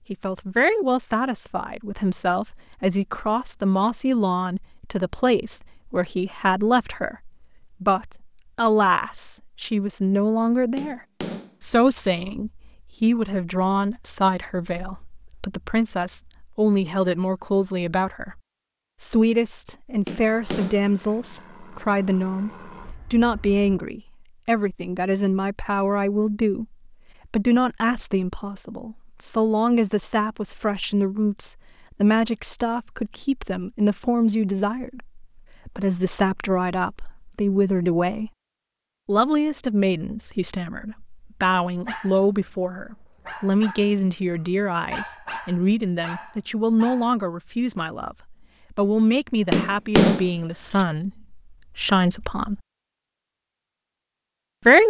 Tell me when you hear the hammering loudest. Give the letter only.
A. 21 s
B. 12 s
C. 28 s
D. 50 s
D.